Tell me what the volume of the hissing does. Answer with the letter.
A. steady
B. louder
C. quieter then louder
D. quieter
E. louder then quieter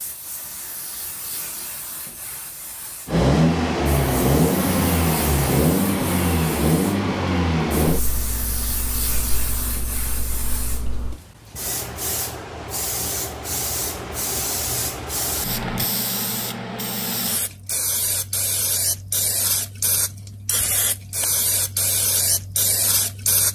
B.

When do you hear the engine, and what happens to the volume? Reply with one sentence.
The engine can be heard from 3.0 to 11.2 s, getting quieter.